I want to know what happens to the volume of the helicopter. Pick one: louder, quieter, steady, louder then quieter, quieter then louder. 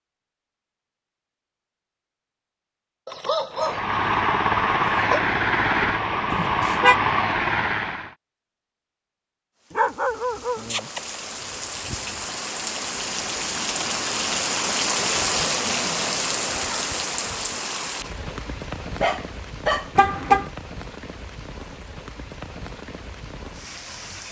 steady.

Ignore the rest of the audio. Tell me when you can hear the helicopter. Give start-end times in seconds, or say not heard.
3.5-8.2.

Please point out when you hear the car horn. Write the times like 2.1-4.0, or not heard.
6.3-7.0, 19.9-20.5.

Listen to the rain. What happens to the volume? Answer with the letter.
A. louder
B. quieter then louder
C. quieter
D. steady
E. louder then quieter
E.